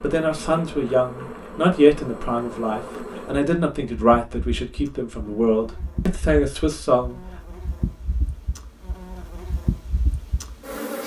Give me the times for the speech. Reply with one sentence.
You can hear the speech from 0.0 to 7.2 s.